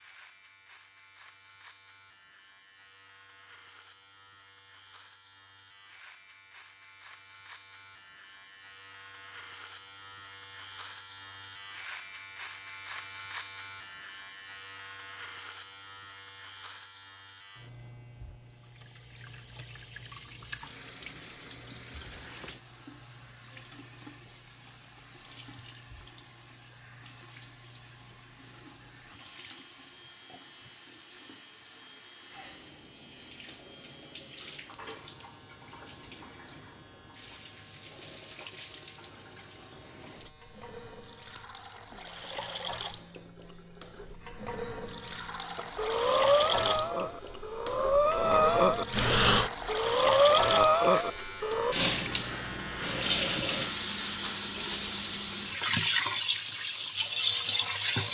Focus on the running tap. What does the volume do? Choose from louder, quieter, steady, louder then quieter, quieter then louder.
louder.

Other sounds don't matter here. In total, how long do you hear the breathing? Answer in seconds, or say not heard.
6 s.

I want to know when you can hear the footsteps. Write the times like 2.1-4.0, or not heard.
not heard.